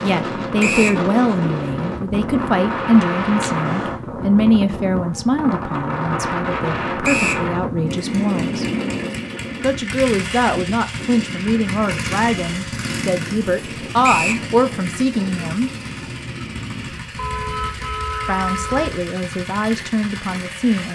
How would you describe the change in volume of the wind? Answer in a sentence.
The volume of the wind goes down.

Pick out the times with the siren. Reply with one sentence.
The siren can't be heard in this clip.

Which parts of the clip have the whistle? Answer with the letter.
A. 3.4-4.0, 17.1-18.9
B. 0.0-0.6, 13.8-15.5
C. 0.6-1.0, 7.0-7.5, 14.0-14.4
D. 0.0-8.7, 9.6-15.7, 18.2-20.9
C.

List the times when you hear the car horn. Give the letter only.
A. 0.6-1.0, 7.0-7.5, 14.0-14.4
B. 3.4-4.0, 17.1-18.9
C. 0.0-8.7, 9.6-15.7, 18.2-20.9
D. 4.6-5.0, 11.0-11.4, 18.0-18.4
B.